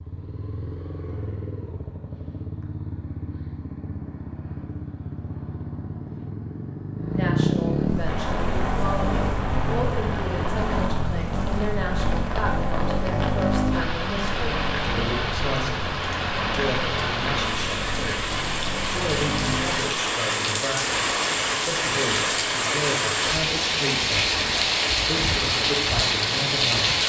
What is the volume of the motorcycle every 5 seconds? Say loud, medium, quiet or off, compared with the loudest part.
medium, loud, loud, medium, off, off.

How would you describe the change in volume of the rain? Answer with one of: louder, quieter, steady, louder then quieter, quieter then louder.
louder.